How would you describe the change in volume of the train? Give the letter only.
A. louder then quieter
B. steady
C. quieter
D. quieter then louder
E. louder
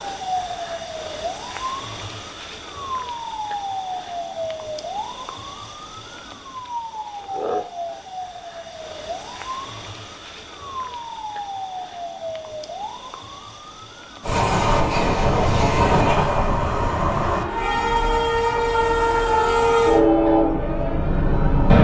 B.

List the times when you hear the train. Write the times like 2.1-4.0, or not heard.
14.2-21.7.